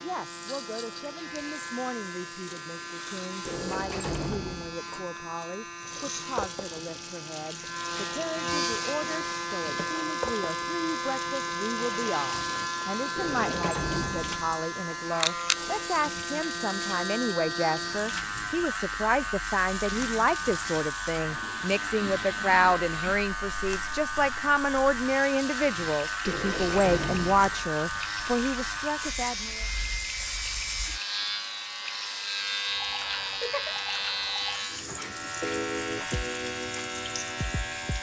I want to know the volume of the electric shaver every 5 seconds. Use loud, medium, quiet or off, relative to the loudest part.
medium, loud, loud, loud, loud, loud, loud, loud.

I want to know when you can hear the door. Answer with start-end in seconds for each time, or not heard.
3.5-4.8, 13.2-14.6, 26.2-27.7.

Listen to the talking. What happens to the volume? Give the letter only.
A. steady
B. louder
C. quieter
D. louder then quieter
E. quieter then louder
B.